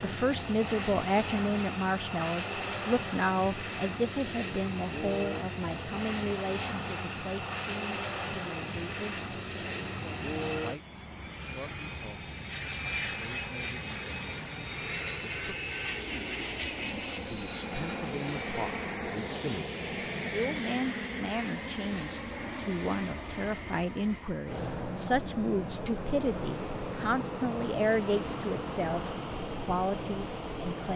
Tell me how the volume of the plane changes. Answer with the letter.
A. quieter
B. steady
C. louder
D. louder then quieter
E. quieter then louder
B.